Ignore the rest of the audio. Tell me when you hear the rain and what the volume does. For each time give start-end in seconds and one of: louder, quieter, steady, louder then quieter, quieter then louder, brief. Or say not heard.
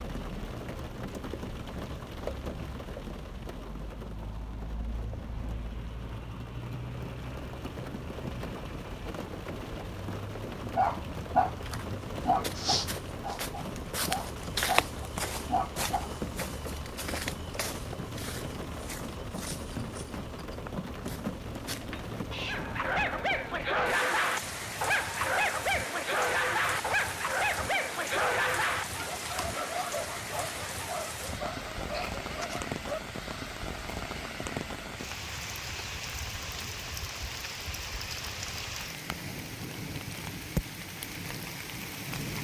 0.0-42.3 steady.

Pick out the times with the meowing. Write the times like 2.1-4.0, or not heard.
21.9-22.6.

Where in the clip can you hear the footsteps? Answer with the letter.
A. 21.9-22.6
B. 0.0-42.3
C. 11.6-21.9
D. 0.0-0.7
C.